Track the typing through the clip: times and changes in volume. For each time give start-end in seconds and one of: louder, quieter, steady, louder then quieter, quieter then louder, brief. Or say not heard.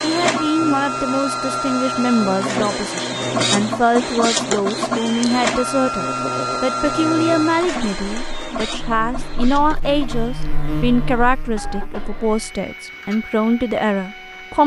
not heard.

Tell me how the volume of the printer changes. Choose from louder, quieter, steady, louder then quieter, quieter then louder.
quieter.